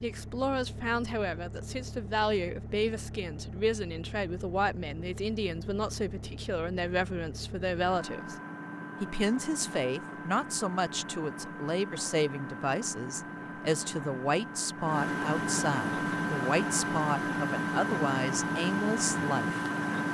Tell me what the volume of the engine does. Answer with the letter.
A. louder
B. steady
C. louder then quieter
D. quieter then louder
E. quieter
A.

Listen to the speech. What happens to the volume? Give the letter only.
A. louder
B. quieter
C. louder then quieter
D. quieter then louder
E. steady
E.